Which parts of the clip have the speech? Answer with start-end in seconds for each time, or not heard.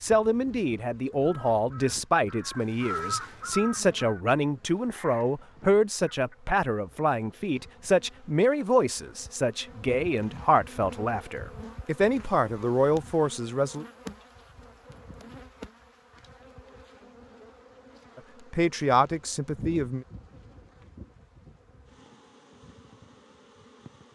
0.0-13.8, 18.1-20.1.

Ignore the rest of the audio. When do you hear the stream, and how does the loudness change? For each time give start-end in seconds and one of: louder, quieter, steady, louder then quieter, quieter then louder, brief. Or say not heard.
not heard.